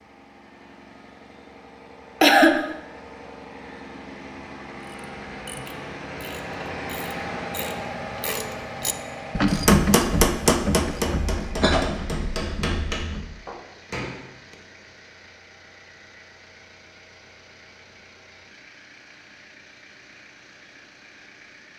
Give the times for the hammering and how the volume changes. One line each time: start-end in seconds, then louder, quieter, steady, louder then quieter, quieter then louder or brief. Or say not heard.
9.4-14.6 quieter.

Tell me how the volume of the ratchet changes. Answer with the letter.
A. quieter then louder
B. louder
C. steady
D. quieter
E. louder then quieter
E.